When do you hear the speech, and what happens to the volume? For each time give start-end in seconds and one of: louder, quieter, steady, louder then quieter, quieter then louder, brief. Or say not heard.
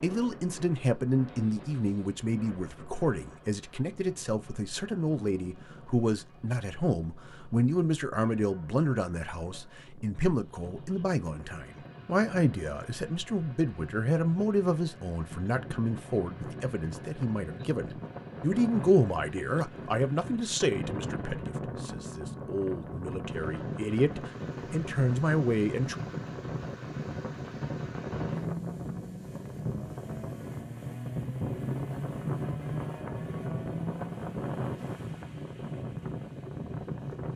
0.0-25.9 steady.